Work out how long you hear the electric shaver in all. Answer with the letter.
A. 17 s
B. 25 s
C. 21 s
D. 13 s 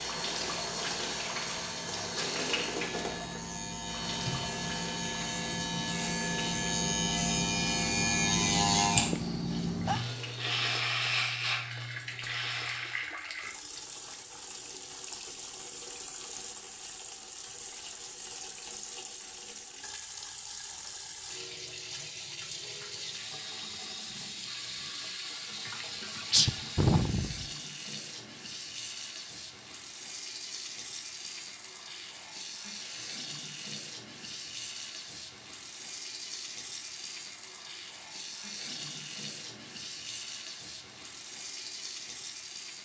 D.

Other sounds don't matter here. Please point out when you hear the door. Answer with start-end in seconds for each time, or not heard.
not heard.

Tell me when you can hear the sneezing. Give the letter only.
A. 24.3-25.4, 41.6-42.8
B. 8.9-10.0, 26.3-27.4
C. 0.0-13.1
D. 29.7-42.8
B.